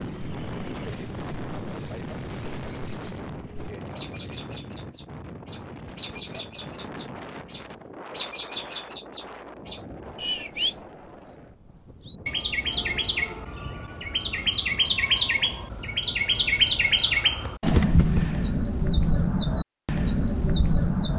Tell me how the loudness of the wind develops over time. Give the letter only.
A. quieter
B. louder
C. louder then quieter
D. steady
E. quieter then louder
A.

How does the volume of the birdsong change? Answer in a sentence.
The volume of the birdsong goes up.